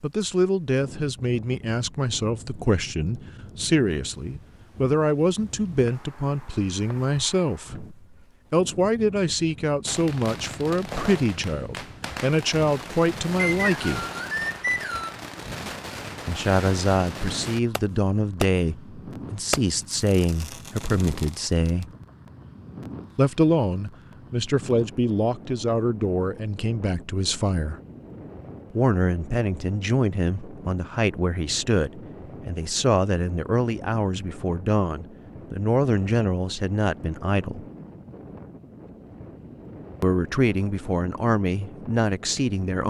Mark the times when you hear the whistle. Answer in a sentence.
You can hear the whistle from 13.3 to 15.2 s.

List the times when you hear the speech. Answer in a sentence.
The speech can be heard from 0.0 to 14.1 s, from 16.2 to 21.9 s, from 23.1 to 27.8 s, from 28.7 to 37.6 s and from 40.0 to 42.8 s.